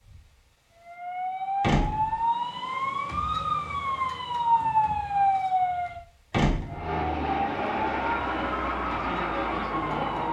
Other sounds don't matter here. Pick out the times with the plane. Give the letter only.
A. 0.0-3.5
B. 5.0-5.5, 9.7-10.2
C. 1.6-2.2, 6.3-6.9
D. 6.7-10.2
D.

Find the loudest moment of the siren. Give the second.
5 s.